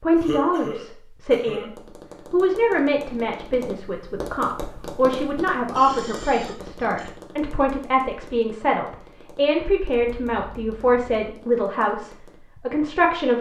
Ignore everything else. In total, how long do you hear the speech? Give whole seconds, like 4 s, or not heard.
13 s.